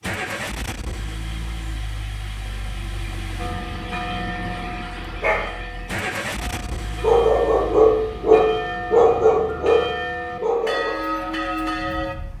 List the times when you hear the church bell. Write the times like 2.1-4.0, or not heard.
3.4-12.2.